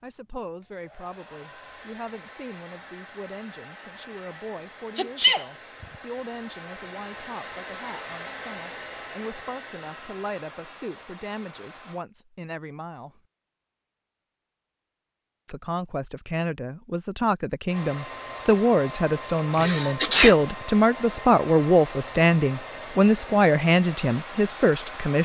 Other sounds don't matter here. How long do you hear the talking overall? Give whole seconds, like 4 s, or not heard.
23 s.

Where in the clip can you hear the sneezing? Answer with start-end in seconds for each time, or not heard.
5.0-5.8, 19.4-20.4.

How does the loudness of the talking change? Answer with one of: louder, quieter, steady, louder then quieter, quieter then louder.
louder.